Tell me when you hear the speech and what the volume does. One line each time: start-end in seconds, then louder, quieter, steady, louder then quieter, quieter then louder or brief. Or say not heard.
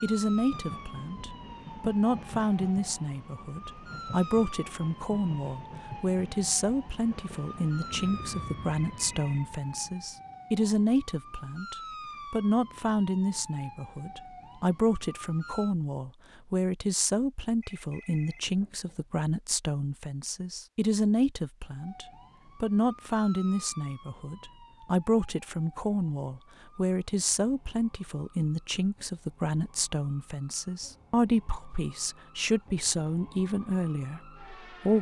0.0-34.9 steady.